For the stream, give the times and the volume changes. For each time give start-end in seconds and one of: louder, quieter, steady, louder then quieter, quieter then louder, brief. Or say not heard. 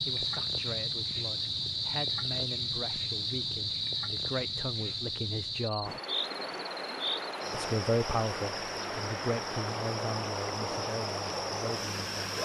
5.8-12.3 steady.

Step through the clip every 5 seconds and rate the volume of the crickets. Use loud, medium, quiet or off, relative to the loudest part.
loud, medium, medium.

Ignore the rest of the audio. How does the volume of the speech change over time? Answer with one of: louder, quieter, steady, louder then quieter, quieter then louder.
louder then quieter.